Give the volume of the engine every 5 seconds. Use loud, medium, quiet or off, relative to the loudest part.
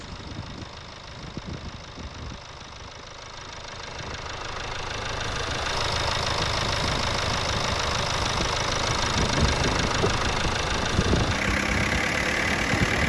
quiet, loud, loud.